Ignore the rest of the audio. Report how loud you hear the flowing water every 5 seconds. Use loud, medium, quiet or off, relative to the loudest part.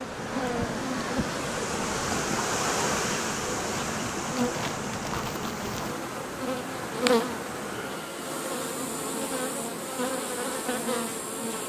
loud, medium, off.